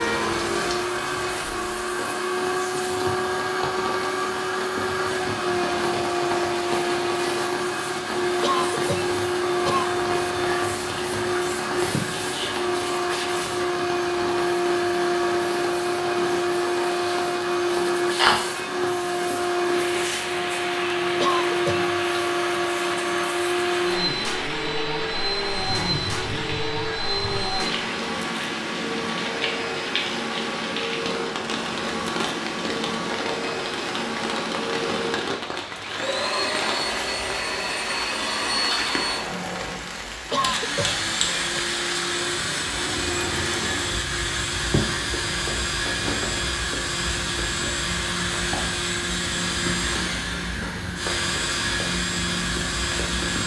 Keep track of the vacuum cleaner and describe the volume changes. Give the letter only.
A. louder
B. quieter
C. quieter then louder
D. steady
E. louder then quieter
D.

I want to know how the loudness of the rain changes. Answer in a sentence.
The volume of the rain stays about the same.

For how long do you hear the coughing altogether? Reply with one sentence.
The coughing can be heard for 4 seconds in total.